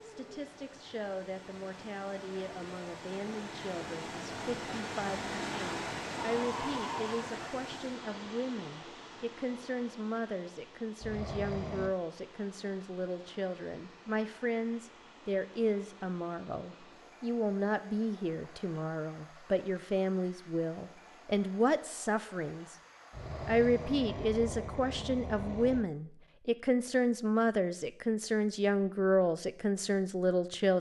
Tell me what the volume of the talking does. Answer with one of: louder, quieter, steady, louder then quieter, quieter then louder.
louder.